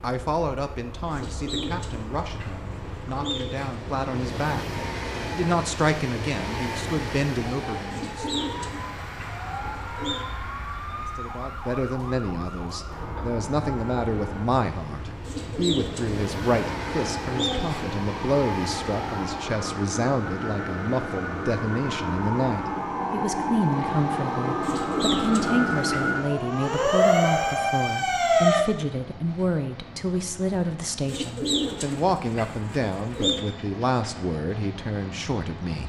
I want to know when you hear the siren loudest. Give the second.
28 s.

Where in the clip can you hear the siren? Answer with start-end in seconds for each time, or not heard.
7.7-14.4, 16.4-28.6.